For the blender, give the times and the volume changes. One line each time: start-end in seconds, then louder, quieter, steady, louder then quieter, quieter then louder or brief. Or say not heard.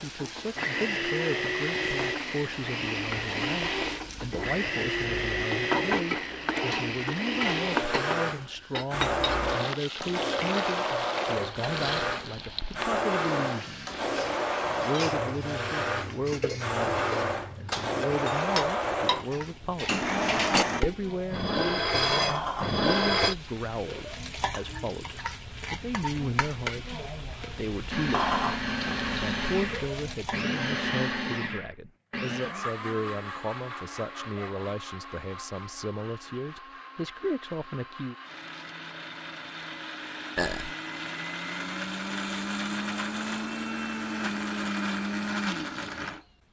0.0-20.9 steady
27.9-46.2 quieter then louder.